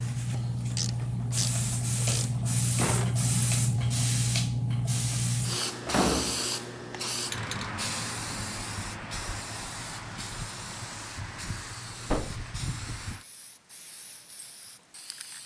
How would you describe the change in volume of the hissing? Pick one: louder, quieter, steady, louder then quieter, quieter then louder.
quieter.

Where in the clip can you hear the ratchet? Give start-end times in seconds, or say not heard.
0.3-2.6.